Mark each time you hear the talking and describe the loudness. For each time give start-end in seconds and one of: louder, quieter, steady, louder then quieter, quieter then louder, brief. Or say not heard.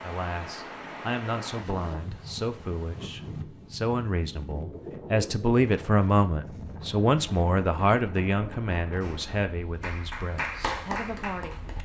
0.0-11.6 louder then quieter.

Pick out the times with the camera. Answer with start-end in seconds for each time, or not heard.
not heard.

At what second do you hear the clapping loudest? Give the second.
11 s.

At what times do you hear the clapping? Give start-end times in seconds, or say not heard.
9.0-11.7.